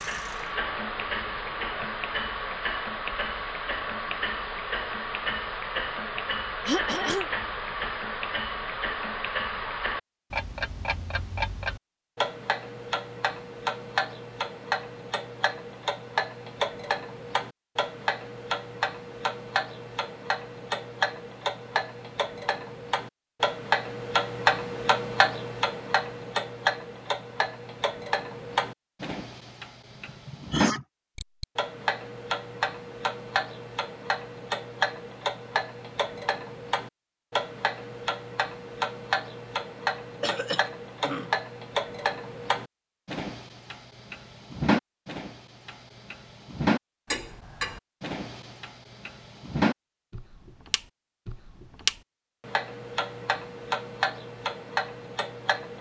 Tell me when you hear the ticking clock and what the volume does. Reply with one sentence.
The ticking clock can be heard from 0.0 to 55.7 s, at a steady volume.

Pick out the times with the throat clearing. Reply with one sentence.
The throat clearing can be heard from 6.7 to 7.3 s, from 29.9 to 30.9 s and from 40.2 to 41.3 s.